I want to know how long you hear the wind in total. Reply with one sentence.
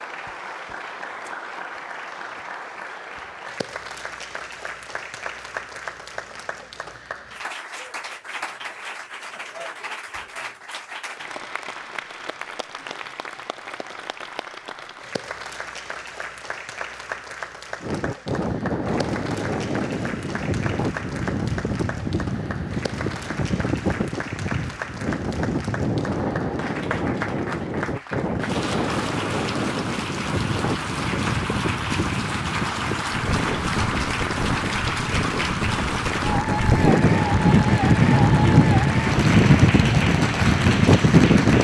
You can hear the wind for 24 seconds altogether.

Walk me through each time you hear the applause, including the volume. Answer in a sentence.
The applause can be heard from 0.0 to 41.5 s, getting louder.